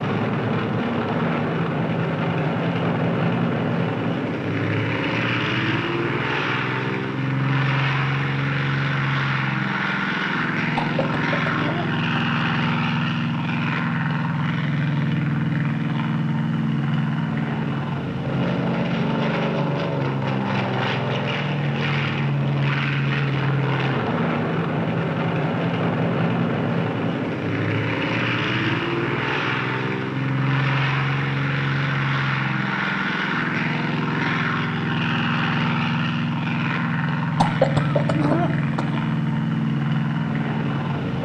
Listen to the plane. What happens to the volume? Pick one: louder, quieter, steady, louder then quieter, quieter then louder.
steady.